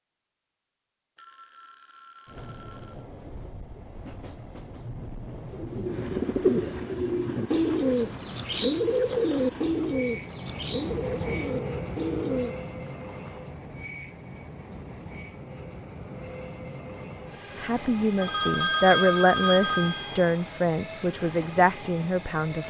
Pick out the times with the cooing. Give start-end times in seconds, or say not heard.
5.5-12.6.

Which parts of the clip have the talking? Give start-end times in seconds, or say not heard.
17.6-22.6.